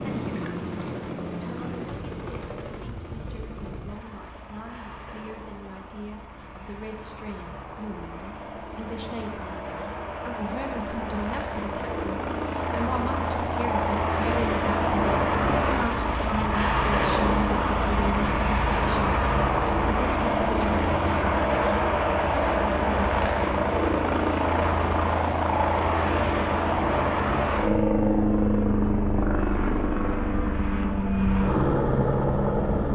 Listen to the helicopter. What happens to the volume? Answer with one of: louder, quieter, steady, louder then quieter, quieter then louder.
louder.